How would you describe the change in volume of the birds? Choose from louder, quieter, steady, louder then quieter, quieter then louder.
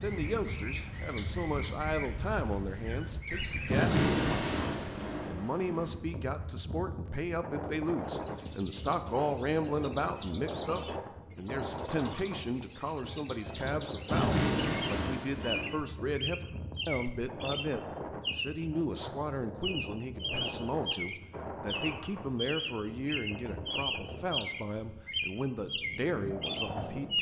louder.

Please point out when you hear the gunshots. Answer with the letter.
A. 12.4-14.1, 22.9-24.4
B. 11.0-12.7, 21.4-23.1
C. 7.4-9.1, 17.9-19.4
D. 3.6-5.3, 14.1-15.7
D.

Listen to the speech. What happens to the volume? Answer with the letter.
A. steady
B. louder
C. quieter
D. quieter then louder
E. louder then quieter
A.